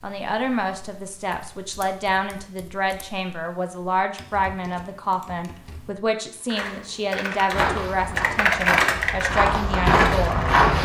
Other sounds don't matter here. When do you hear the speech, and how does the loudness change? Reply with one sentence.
The speech can be heard from 0.0 to 10.8 s, at a steady volume.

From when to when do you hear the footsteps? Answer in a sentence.
The footsteps can be heard from 7.5 to 10.8 s.